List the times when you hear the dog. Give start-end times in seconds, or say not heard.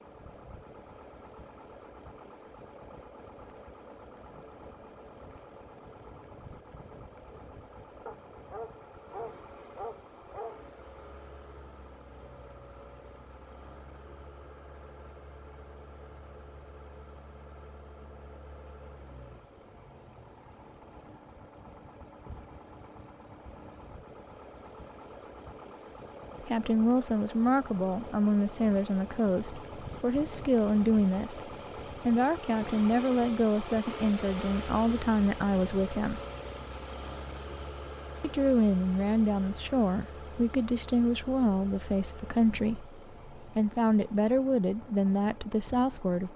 8.1-10.7.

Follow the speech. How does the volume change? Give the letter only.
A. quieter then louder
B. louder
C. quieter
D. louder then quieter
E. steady
E.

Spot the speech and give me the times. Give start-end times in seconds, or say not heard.
26.4-36.2, 38.2-46.3.